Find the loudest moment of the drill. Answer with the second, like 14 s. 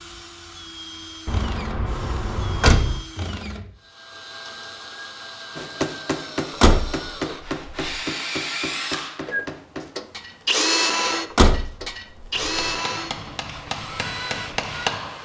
11 s.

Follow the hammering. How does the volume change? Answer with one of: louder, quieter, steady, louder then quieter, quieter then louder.
quieter then louder.